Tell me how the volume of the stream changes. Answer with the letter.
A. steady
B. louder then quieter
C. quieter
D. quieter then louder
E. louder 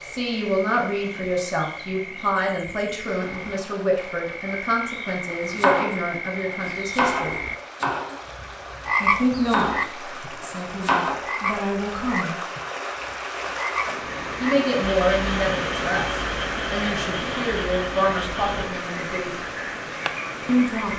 E.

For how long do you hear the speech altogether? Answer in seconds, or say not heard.
16 s.